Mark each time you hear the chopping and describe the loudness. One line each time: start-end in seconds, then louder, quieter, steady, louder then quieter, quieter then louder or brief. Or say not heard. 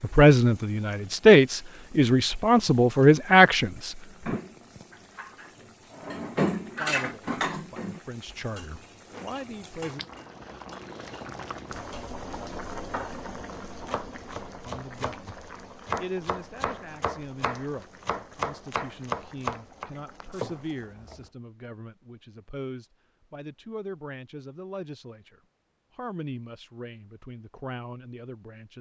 13.7-20.6 louder.